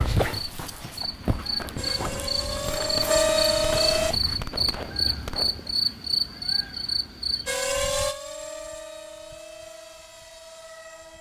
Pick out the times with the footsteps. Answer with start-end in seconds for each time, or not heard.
not heard.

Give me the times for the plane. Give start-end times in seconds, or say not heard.
1.8-4.2, 7.5-11.1.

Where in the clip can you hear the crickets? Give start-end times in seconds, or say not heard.
0.2-7.7.